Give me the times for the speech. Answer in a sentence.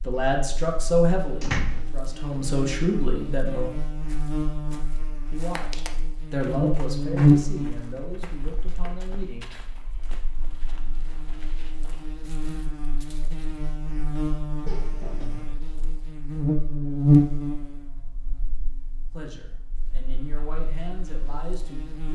You can hear the speech from 0.1 to 3.7 s, from 5.3 to 9.4 s and from 19.1 to 22.1 s.